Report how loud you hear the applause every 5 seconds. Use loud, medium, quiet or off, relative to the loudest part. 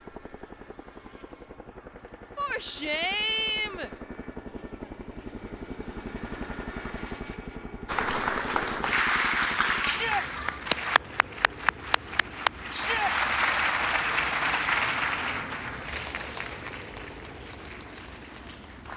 off, loud, loud, medium.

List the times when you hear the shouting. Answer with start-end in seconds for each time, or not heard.
2.4-3.9, 9.8-10.2, 12.7-13.2.